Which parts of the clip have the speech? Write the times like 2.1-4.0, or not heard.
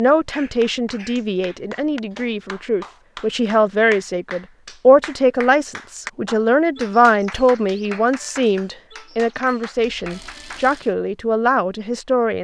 0.0-12.3.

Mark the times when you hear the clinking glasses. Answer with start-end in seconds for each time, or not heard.
not heard.